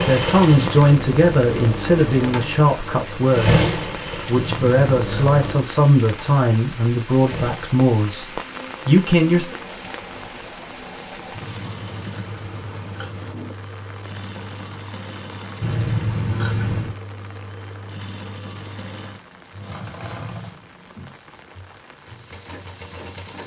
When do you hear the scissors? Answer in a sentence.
You can hear the scissors from 4.3 to 5.4 s, from 11.3 to 13.4 s and from 15.6 to 16.9 s.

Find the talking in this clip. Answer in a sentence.
You can hear the talking from 0.0 to 9.6 s.